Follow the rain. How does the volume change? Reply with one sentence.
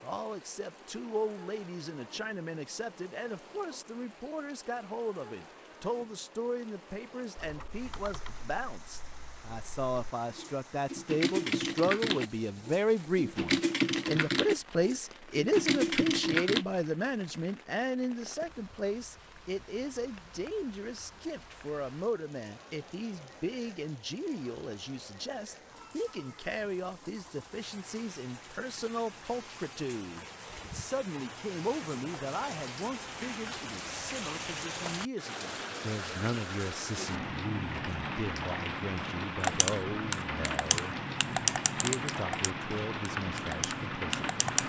The loudness of the rain goes up.